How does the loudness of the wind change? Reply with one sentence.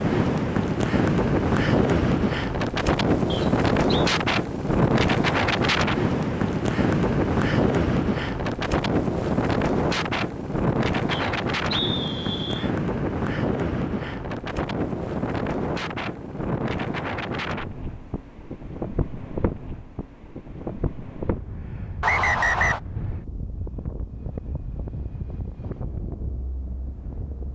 The loudness of the wind goes down.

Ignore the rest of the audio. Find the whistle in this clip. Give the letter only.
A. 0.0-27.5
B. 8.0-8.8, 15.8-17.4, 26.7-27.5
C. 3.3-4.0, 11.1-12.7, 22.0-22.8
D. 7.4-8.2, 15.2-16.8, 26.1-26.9
C.